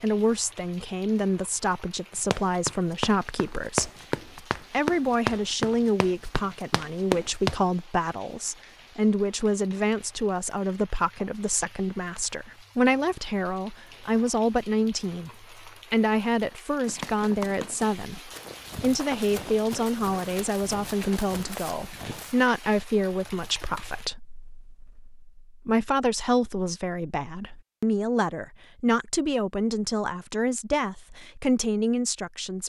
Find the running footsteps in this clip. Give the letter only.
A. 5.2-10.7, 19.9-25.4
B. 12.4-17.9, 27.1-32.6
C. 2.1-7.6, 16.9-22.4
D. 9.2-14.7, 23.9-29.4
C.